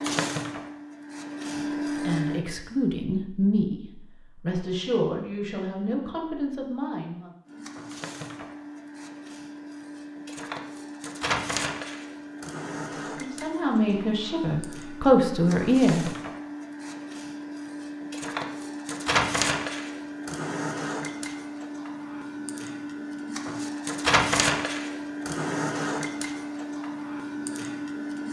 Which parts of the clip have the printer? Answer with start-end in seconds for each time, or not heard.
0.0-2.4, 7.5-28.2.